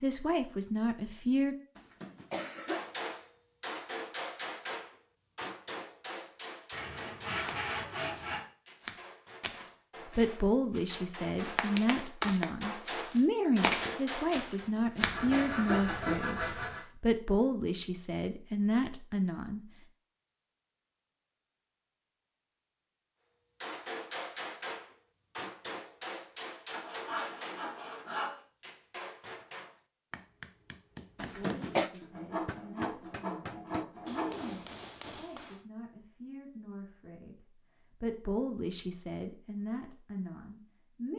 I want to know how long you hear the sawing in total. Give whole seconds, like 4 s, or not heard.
8 s.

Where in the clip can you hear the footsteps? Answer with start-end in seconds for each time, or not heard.
7.4-15.2.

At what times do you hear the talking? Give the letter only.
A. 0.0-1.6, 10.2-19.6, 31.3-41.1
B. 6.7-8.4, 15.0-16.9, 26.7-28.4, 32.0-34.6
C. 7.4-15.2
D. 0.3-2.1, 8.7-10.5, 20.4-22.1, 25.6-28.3
A.